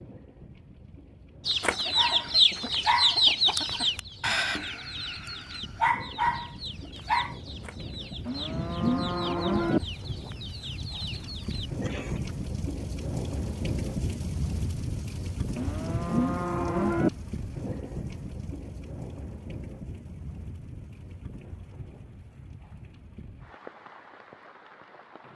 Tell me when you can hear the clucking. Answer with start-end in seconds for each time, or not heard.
1.4-12.3.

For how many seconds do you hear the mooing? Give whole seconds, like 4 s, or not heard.
3 s.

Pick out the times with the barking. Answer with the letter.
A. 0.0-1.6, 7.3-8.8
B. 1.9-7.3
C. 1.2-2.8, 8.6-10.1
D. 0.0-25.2
B.